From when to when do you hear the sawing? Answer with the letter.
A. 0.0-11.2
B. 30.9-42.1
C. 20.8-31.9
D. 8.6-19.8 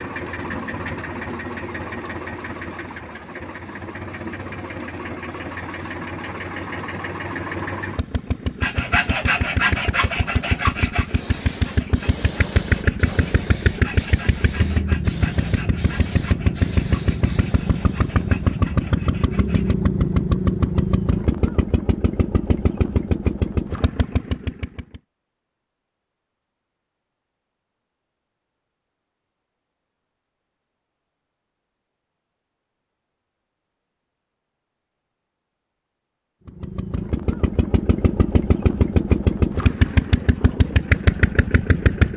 D.